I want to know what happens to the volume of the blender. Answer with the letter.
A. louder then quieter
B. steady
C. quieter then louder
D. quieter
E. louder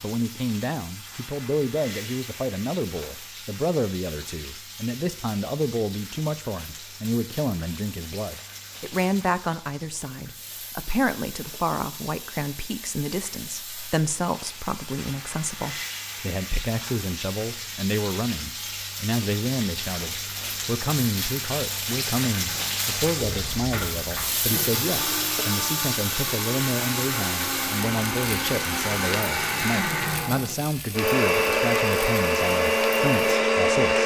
E.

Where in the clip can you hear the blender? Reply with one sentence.
The blender can be heard from 22.4 to 34.0 s.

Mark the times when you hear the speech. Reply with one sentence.
The speech can be heard from 0.0 to 34.0 s.